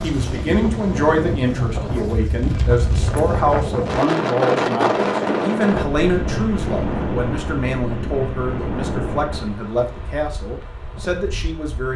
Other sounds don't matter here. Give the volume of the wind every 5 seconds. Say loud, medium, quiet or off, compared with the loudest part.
loud, loud, quiet.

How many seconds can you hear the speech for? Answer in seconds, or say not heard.
12 s.